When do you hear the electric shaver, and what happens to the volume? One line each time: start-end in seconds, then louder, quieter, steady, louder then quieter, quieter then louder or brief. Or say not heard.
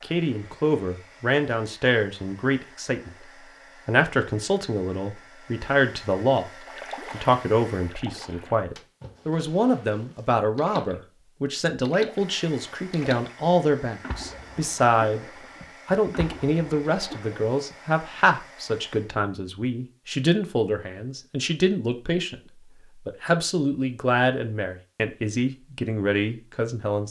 not heard.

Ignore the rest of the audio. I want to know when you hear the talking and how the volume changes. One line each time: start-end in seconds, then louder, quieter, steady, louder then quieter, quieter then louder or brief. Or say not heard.
0.0-27.0 steady.